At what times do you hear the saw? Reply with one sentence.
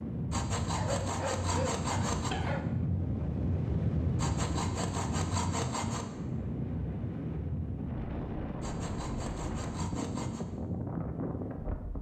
The saw can be heard from 0.3 to 2.3 s, from 4.2 to 6.1 s and from 8.6 to 10.4 s.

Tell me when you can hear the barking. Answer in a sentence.
The barking can be heard from 0.7 to 2.6 s.